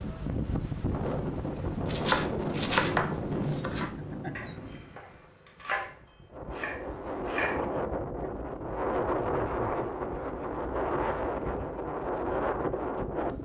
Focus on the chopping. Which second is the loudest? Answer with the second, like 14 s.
3 s.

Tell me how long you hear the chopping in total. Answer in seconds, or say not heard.
6 s.